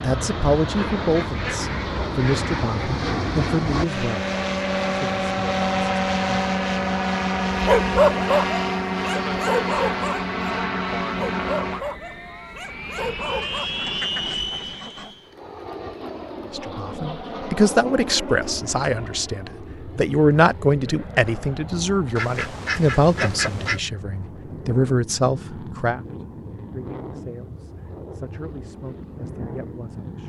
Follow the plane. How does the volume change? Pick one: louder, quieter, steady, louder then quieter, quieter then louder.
quieter.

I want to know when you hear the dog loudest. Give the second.
8 s.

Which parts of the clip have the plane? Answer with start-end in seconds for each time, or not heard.
0.0-30.2.